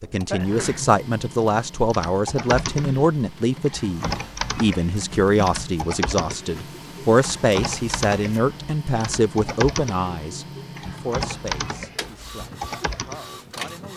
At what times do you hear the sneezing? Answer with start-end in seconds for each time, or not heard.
0.3-0.9.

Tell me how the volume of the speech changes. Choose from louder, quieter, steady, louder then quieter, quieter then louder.
quieter.